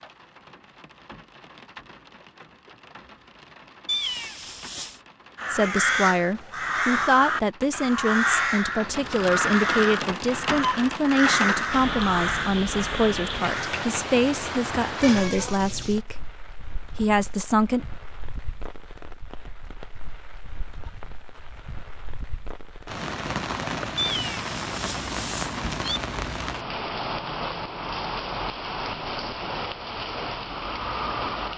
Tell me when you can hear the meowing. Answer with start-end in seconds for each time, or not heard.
3.9-5.0, 15.0-16.0, 23.9-26.0.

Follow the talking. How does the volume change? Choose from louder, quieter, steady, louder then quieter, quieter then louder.
steady.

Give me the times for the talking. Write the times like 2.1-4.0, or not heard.
5.5-17.9.